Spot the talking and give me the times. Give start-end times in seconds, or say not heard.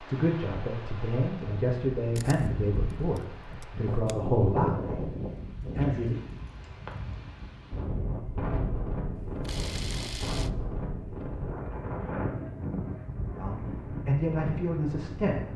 0.0-5.0, 5.8-6.2, 13.3-15.5.